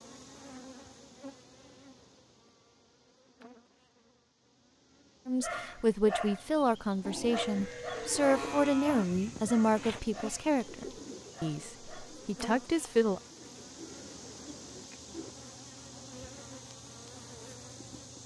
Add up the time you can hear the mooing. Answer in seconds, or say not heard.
2 s.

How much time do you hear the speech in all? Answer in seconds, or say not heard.
8 s.